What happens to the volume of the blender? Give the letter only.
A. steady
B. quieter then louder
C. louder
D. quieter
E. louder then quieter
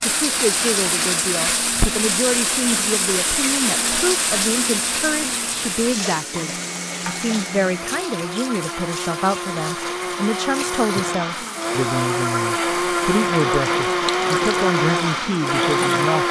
C.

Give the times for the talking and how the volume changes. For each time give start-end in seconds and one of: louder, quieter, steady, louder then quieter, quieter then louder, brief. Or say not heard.
0.0-16.2 steady.